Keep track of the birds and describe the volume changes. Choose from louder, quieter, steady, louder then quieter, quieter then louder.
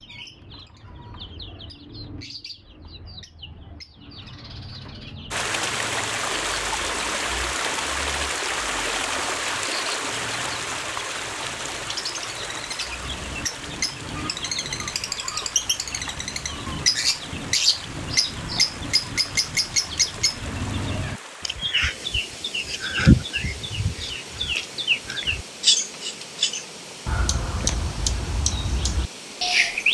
louder.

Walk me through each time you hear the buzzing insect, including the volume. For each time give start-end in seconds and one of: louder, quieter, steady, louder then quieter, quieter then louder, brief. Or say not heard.
not heard.